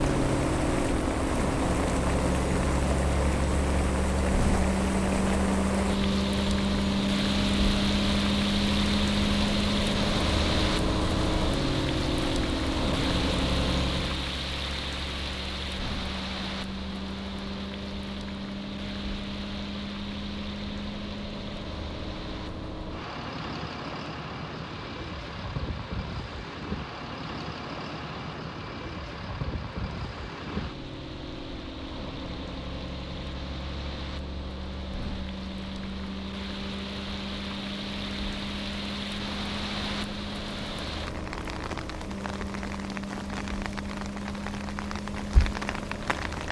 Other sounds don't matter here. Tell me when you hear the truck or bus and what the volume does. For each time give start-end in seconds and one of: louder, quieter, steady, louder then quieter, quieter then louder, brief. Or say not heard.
0.0-46.4 quieter.